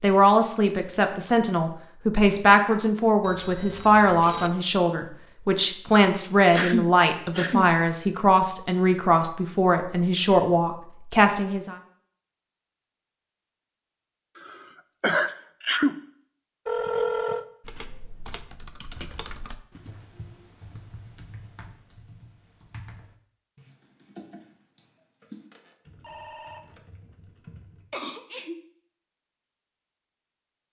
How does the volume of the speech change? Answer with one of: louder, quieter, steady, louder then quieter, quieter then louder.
steady.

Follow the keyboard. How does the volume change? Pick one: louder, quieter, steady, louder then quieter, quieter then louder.
quieter.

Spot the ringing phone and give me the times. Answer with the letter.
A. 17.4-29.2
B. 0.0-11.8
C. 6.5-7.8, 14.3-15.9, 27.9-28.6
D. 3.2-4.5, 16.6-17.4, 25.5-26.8
D.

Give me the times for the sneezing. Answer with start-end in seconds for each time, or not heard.
6.5-7.8, 14.3-15.9, 27.9-28.6.